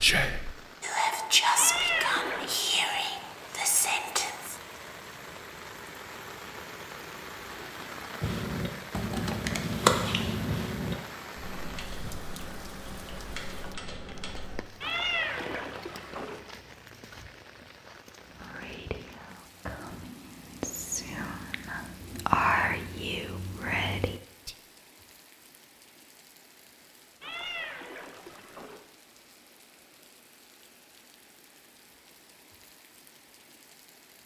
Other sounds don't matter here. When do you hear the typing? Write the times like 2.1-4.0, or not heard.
8.2-14.7.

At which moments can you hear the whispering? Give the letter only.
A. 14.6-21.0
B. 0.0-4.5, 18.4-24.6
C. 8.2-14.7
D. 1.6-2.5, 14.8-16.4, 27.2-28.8
B.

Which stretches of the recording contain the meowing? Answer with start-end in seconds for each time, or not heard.
1.6-2.5, 14.8-16.4, 27.2-28.8.